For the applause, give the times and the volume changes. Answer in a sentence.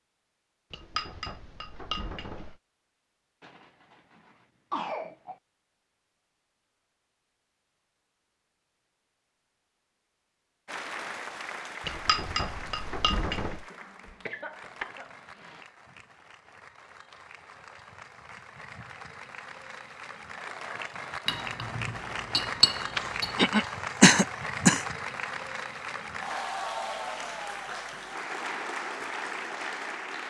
The applause can be heard from 10.7 to 30.2 s, getting quieter then louder.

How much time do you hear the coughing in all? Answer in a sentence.
The coughing can be heard for 6 seconds in total.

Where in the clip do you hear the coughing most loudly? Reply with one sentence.
The volume of the coughing peaks at 24 seconds.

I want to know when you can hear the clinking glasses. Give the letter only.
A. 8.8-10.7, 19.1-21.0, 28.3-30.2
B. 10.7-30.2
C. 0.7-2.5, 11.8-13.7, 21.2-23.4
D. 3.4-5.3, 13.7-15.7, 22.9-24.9
C.